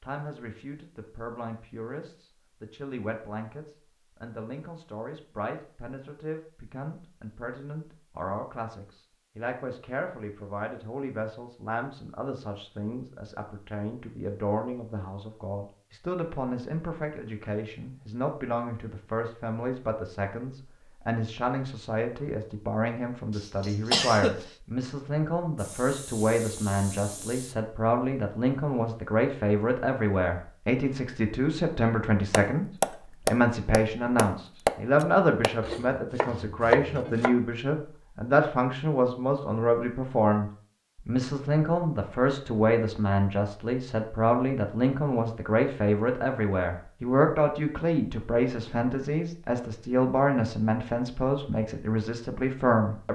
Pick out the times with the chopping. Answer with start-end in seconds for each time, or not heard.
32.3-37.4.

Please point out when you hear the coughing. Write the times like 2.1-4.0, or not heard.
23.4-24.5.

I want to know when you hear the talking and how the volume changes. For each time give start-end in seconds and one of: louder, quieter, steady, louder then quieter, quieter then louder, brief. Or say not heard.
0.0-53.0 louder.